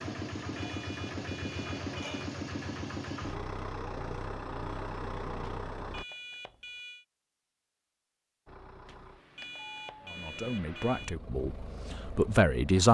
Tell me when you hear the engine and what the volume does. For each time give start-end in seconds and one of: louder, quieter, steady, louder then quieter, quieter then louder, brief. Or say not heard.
0.0-6.0 steady
8.4-12.8 louder.